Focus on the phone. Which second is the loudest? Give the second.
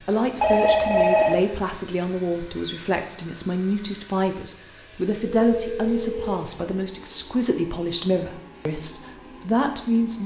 1 s.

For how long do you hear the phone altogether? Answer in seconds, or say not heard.
2 s.